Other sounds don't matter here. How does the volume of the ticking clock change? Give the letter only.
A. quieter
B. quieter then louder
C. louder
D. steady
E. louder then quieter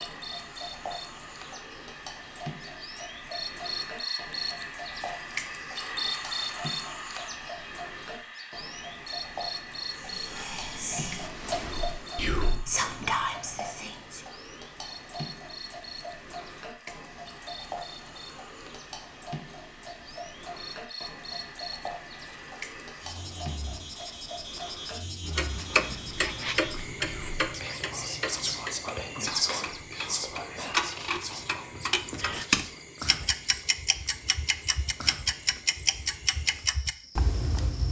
C.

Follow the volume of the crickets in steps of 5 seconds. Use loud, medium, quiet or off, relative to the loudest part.
loud, loud, medium, medium, medium, medium, medium, quiet.